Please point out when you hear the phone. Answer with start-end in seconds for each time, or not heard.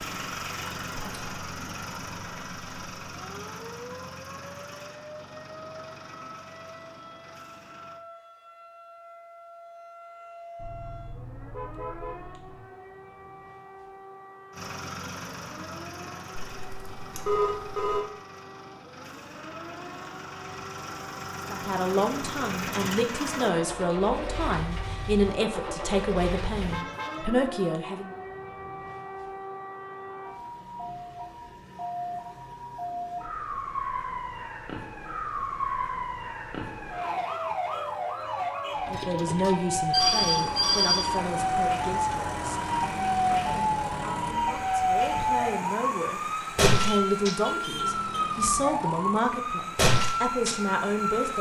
16.4-18.1, 39.9-41.1.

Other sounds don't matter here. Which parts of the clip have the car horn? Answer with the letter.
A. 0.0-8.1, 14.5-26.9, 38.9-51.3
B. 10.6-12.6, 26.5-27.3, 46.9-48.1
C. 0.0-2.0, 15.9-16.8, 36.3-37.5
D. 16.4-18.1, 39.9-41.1
B.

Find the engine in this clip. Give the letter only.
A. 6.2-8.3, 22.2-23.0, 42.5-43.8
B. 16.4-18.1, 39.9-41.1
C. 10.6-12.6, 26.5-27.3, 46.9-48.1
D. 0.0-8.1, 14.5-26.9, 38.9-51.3
D.